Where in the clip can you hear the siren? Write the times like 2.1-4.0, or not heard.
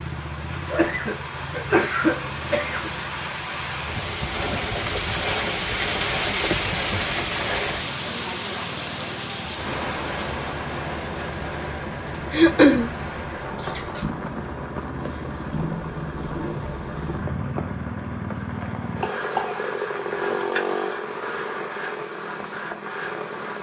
not heard.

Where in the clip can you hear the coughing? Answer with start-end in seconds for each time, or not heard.
0.7-2.9, 12.3-12.9, 18.6-20.6.